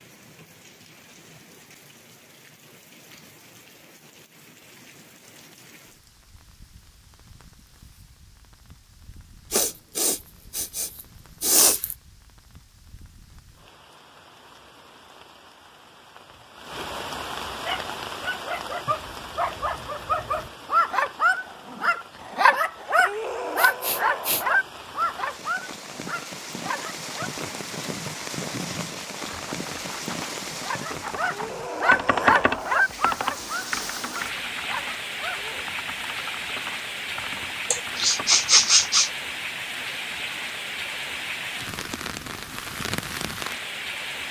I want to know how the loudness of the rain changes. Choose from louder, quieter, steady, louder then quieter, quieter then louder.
louder.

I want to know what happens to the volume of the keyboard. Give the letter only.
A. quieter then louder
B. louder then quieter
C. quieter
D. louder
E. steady
B.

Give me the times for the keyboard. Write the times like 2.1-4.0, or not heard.
29.2-38.9.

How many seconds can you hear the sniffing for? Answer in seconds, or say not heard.
5 s.